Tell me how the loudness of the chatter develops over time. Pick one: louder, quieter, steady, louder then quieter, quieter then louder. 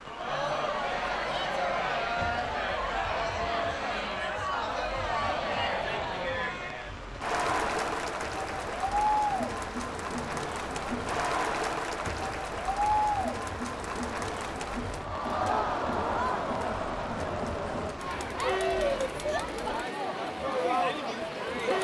steady.